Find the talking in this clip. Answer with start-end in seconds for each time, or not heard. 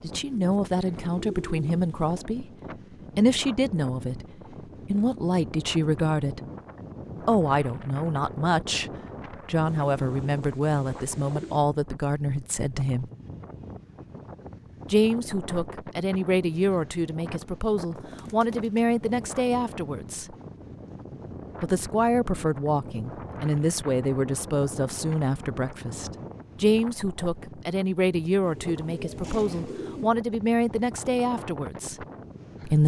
0.0-2.5, 3.1-6.4, 7.2-13.1, 14.8-20.4, 21.6-32.8.